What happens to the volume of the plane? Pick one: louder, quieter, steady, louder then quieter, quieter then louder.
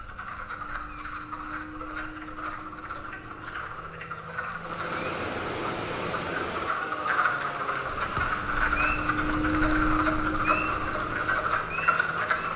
louder.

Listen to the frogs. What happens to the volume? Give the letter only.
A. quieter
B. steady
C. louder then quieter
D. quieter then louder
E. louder
E.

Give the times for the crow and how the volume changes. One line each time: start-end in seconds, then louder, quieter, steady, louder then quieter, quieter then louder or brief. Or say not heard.
not heard.